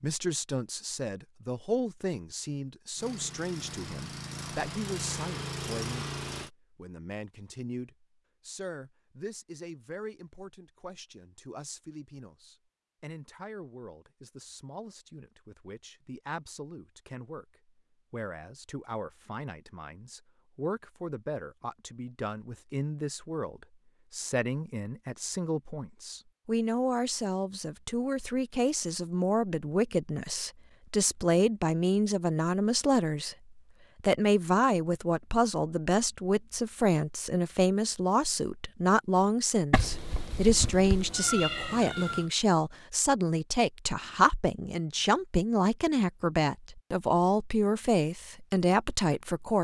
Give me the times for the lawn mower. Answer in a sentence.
The lawn mower can be heard from 3.0 to 6.5 s.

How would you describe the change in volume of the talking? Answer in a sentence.
The volume of the talking goes down, then up.